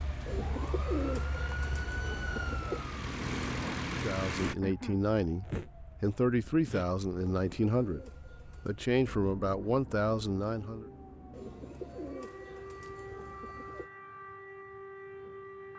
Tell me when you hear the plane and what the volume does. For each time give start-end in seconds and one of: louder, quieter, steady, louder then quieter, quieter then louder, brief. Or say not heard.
0.0-4.5 louder.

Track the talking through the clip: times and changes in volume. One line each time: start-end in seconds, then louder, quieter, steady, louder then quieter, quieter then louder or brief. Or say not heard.
3.9-10.8 steady.